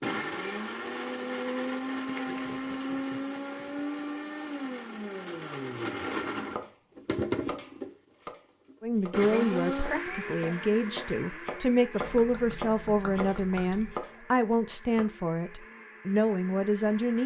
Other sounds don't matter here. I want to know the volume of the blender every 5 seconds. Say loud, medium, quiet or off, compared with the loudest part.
loud, loud, medium, quiet.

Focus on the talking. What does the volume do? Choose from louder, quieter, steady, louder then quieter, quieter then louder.
steady.